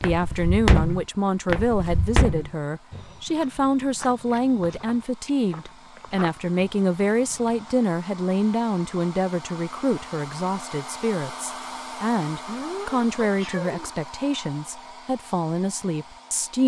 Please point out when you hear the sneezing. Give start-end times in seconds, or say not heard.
12.4-13.9.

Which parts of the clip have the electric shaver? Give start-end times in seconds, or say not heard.
not heard.